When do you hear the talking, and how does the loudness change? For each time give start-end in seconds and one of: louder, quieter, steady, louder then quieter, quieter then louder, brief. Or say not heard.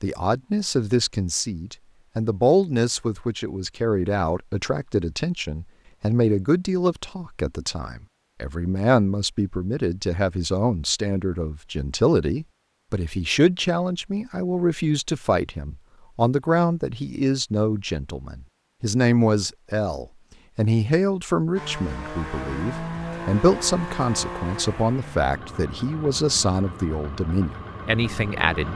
0.0-28.7 steady.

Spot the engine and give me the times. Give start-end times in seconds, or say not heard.
21.6-28.7.